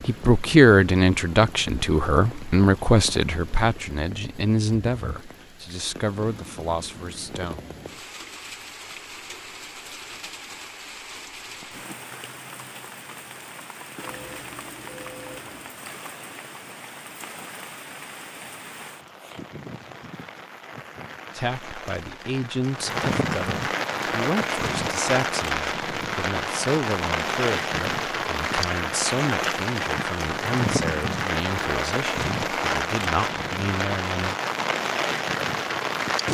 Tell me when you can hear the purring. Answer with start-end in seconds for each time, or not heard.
not heard.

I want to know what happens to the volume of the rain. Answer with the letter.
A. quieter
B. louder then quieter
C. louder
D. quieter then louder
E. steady
C.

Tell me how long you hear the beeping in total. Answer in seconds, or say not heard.
2 s.